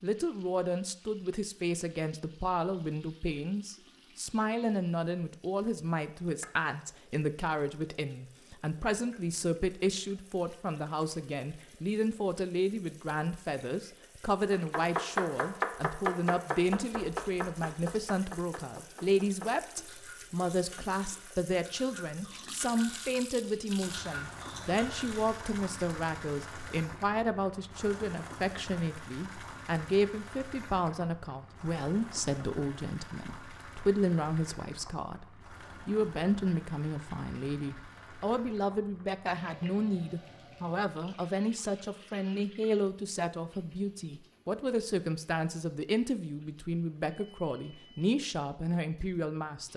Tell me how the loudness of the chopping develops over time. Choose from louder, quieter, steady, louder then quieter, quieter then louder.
quieter.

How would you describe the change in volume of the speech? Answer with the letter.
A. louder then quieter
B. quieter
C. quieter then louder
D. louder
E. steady
E.